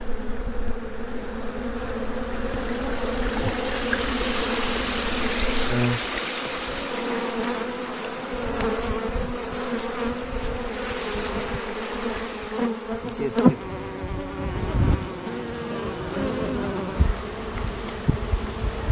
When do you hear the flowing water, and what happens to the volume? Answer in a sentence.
The flowing water can be heard from 0.0 to 12.7 s, getting louder then quieter.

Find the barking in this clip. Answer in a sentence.
The barking can't be heard in this clip.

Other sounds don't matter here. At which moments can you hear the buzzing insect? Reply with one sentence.
The buzzing insect can be heard from 0.0 to 18.8 s.